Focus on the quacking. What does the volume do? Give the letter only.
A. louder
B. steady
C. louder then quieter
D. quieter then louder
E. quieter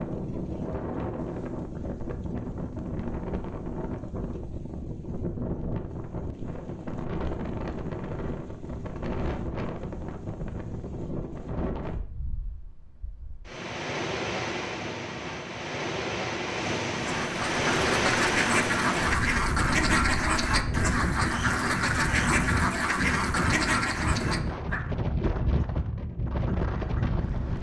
B.